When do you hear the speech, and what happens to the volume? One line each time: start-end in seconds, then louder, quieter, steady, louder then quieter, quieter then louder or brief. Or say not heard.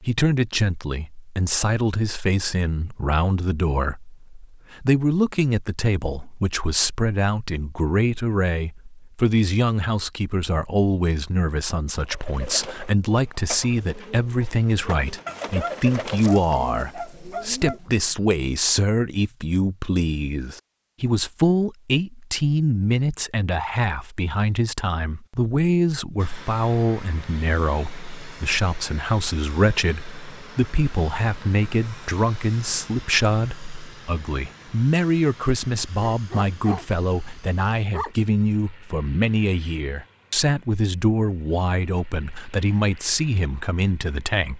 0.0-44.5 steady.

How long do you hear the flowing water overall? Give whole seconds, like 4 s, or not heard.
not heard.